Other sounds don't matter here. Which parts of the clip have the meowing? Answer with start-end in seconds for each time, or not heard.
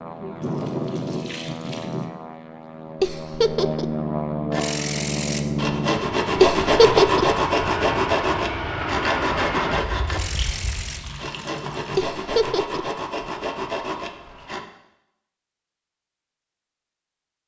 not heard.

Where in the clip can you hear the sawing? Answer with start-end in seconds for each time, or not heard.
4.5-14.7.